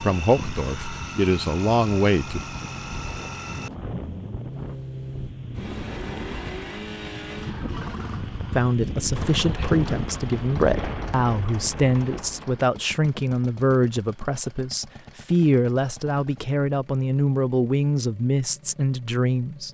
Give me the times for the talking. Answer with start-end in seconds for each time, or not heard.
0.0-2.4, 8.5-19.6.